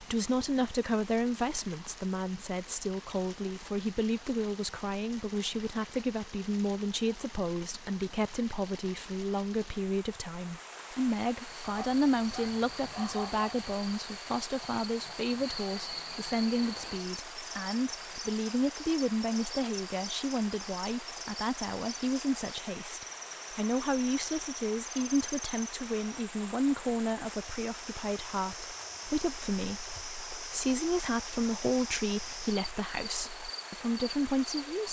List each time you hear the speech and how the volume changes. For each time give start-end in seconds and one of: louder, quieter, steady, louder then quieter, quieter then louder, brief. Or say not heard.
0.0-34.8 steady.